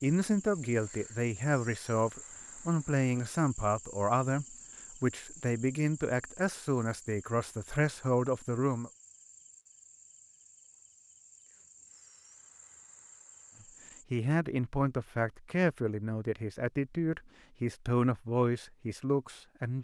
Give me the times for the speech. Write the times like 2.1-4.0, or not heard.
0.0-8.9, 14.1-19.7.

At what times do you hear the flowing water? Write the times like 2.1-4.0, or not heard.
not heard.